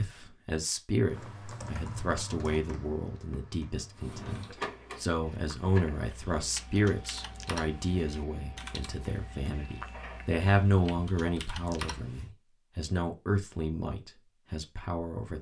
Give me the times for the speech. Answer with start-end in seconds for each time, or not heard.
0.0-15.3.